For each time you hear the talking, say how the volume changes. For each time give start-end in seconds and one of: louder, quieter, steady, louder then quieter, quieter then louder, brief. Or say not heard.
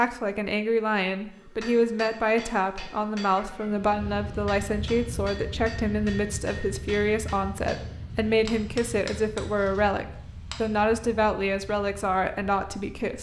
0.0-13.1 steady.